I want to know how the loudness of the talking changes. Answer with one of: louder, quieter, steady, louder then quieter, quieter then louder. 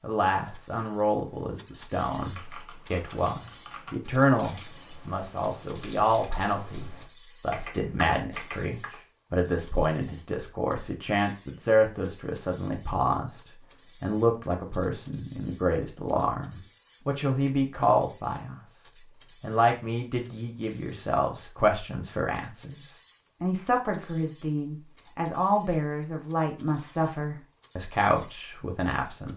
steady.